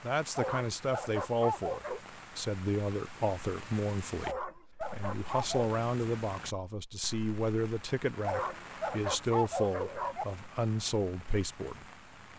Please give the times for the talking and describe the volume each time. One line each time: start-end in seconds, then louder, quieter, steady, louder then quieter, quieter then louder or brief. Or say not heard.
0.0-11.8 steady.